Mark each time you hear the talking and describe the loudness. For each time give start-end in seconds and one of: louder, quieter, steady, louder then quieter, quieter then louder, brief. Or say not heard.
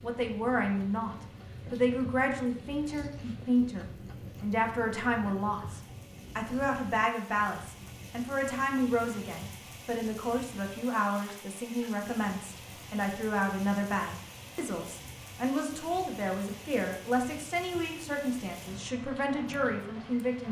0.0-20.4 steady.